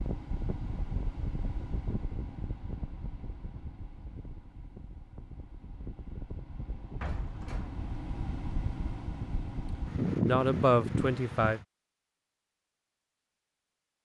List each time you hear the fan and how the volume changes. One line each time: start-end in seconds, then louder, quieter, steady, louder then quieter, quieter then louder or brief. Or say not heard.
0.0-11.7 quieter then louder.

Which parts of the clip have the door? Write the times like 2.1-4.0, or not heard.
7.0-7.8.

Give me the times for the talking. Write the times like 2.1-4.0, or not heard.
10.2-11.6.